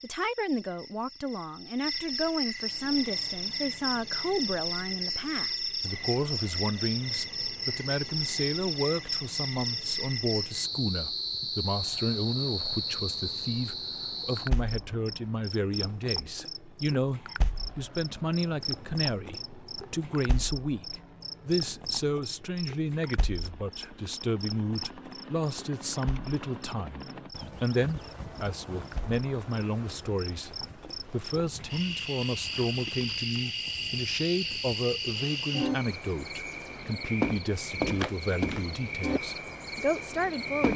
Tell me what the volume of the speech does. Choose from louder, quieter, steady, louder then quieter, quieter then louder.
steady.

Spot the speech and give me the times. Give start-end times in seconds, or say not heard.
0.0-40.7.